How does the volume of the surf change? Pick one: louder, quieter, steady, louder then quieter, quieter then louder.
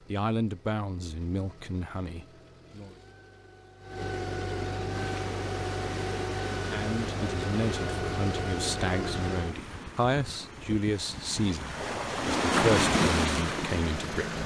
louder.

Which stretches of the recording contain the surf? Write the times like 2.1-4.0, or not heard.
4.8-14.4.